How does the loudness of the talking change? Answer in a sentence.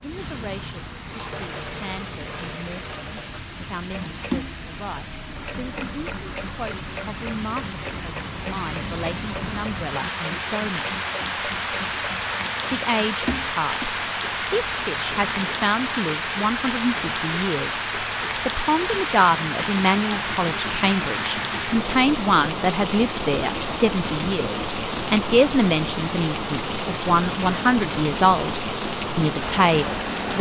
The loudness of the talking goes up.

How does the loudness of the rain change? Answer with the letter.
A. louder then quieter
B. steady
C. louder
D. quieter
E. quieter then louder
C.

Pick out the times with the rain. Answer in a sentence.
You can hear the rain from 0.0 to 30.3 s.